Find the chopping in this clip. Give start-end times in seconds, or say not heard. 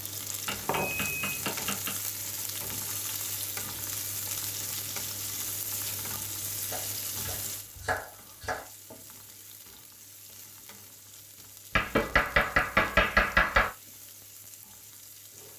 0.5-1.9, 6.7-8.7, 11.8-13.7.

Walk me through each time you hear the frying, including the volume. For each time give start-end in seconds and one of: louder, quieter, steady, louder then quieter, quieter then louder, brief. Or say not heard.
0.0-15.5 quieter.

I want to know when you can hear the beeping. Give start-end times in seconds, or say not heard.
0.8-1.4.